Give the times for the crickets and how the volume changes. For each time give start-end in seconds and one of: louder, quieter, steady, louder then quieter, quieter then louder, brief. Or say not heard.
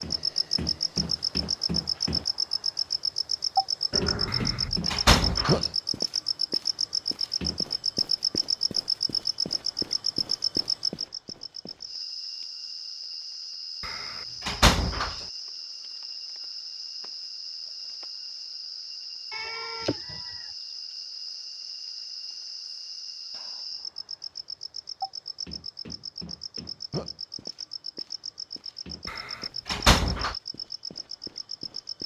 0.0-32.0 quieter.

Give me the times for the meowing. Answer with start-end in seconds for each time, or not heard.
3.9-4.8, 19.3-20.5.